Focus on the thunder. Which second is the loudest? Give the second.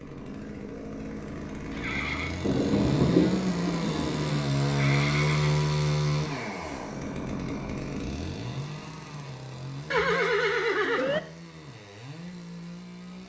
3 s.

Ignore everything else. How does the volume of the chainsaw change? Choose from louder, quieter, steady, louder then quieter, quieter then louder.
louder then quieter.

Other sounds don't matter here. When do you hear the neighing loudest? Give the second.
10 s.